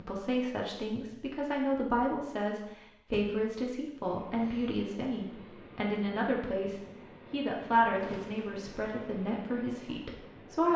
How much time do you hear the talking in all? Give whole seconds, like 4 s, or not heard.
11 s.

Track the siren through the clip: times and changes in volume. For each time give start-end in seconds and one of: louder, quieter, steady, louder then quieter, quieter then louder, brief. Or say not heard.
not heard.